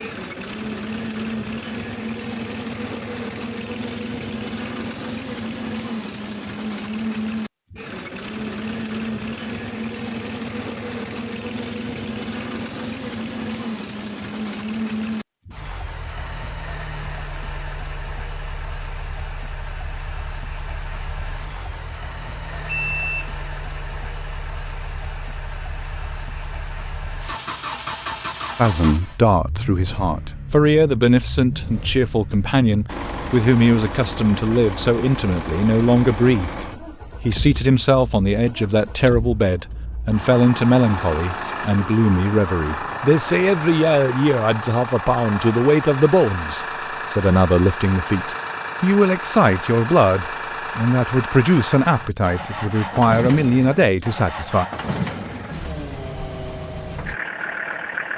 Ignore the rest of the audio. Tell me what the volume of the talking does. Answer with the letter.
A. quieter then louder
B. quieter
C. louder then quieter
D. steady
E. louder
D.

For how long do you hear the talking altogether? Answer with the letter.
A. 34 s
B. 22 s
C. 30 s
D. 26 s
D.